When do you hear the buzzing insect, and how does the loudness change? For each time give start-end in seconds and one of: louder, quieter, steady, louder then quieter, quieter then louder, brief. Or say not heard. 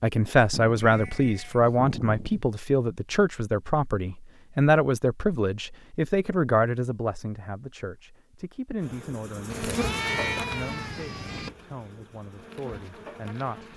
8.8-13.7 quieter then louder.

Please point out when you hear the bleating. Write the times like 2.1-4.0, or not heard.
0.5-2.5, 9.5-11.5.